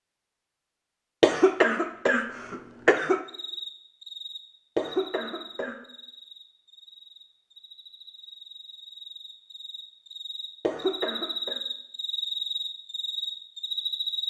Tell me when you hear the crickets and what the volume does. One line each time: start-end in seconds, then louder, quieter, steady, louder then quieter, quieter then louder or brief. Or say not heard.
3.0-14.2 quieter then louder.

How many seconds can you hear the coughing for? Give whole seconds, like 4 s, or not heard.
4 s.